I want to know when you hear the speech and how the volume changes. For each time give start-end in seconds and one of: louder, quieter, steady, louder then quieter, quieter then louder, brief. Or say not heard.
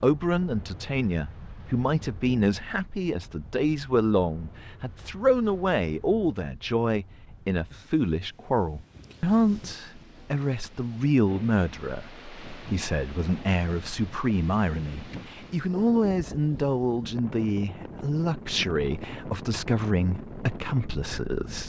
0.0-21.6 steady.